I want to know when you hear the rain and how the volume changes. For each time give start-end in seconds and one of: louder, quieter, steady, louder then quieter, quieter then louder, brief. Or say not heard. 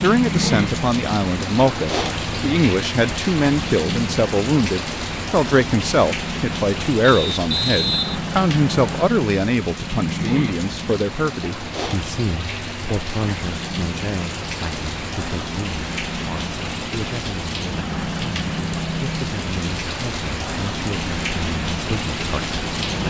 0.0-23.0 steady.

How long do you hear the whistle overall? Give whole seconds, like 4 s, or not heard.
2 s.